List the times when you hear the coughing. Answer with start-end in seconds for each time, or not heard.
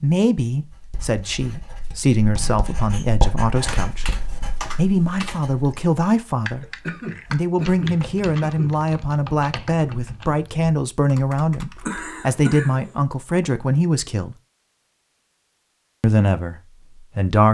2.5-3.1, 6.8-8.8, 11.8-12.8.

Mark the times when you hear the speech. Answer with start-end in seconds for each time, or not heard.
0.0-6.7, 7.3-14.3, 16.0-17.4.